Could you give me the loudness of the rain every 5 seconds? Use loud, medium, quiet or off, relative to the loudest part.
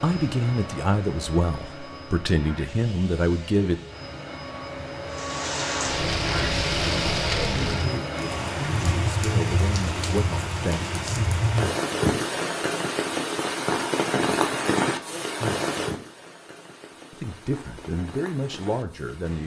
off, loud, loud, medium.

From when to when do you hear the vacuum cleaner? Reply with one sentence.
The vacuum cleaner can be heard from 0.0 to 8.6 s.